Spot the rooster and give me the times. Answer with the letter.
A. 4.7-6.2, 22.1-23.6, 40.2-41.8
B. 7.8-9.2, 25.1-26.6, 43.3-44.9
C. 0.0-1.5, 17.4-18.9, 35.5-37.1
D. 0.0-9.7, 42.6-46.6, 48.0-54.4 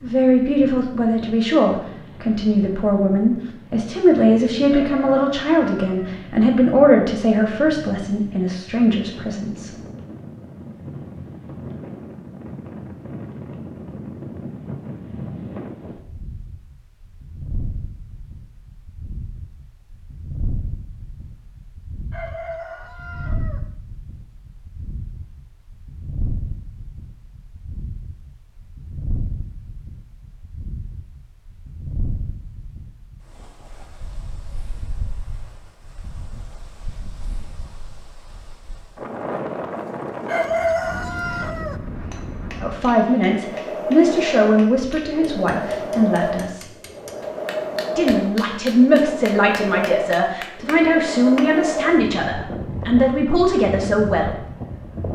A.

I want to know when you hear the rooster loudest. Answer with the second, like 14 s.
41 s.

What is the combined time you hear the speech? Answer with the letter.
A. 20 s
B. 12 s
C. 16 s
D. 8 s
A.